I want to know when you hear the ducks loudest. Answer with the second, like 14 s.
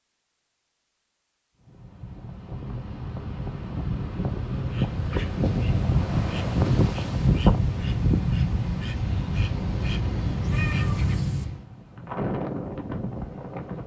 11 s.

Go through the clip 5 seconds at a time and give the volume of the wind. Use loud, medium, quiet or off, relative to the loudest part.
medium, loud, medium.